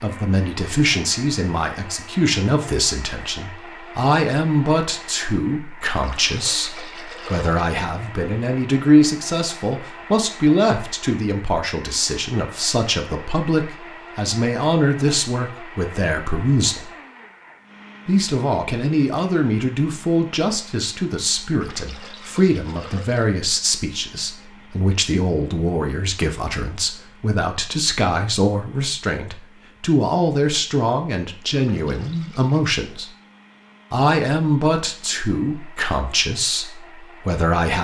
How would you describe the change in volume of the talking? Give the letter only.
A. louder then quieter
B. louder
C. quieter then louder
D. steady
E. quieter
D.